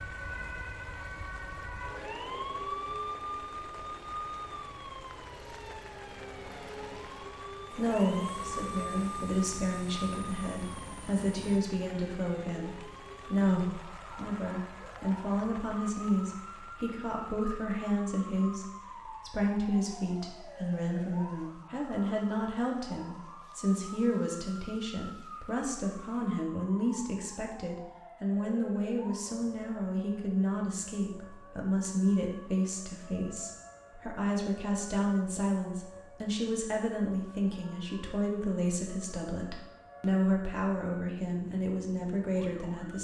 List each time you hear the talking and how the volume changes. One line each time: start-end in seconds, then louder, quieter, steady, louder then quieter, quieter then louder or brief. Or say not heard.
7.7-42.9 steady.